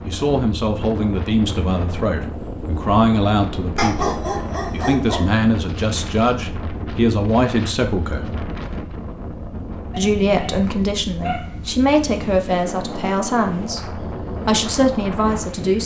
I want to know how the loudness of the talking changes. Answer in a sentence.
The volume of the talking stays about the same.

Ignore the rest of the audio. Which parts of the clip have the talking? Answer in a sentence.
You can hear the talking from 0.1 to 8.2 s and from 9.9 to 15.8 s.